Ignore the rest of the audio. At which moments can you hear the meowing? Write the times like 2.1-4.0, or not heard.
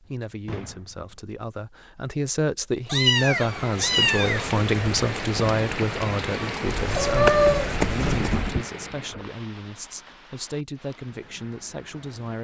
2.9-4.5, 6.7-8.3.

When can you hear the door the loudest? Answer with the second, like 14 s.
8 s.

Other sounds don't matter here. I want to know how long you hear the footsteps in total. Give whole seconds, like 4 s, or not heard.
not heard.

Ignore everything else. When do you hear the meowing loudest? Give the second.
7 s.